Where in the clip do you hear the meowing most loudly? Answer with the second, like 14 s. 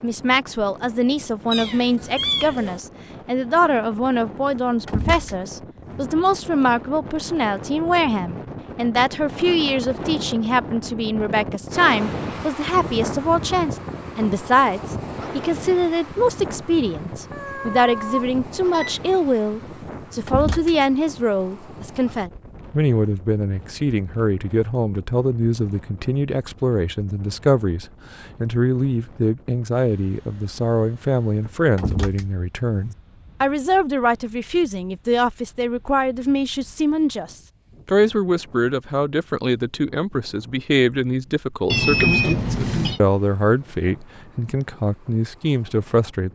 42 s.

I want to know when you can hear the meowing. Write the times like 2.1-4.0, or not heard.
1.5-2.8, 17.3-19.1, 41.7-43.0.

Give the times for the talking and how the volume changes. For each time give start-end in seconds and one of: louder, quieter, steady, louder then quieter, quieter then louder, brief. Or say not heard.
0.0-46.3 steady.